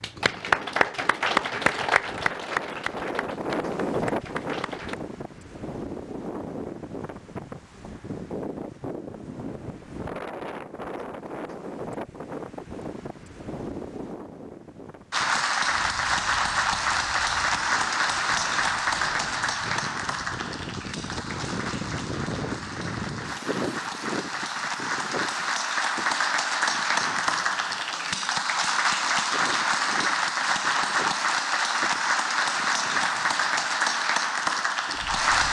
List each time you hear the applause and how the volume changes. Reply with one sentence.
You can hear the applause from 0.0 to 5.0 s, getting quieter; and from 15.1 to 35.4 s, getting quieter then louder.